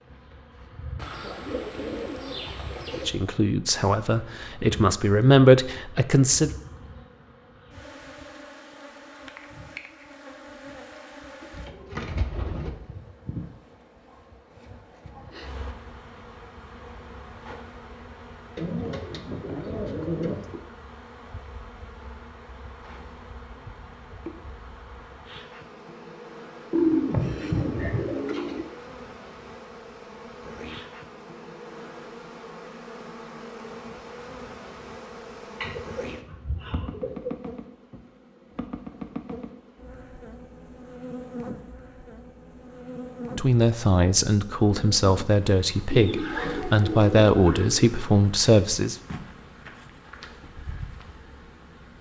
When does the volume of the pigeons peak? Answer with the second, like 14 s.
27 s.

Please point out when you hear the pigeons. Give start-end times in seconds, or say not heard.
0.9-3.1, 11.4-12.7, 18.6-20.6, 26.7-28.6, 35.6-37.4, 45.9-48.0.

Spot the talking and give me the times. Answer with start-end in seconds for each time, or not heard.
3.0-6.5, 43.4-49.0.